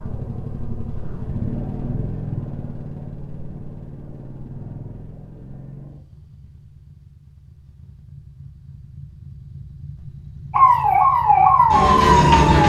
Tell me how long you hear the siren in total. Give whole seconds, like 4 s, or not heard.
2 s.